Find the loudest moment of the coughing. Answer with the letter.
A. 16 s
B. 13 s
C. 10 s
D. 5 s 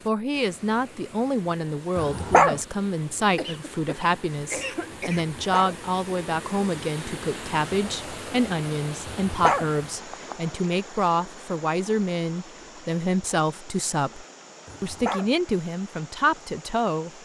D.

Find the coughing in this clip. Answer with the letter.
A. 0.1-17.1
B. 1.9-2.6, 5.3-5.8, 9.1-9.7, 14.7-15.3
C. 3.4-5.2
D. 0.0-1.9
C.